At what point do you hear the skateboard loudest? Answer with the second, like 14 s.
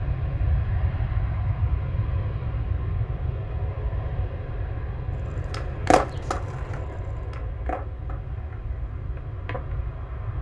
6 s.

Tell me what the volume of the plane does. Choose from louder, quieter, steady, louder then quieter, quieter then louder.
quieter.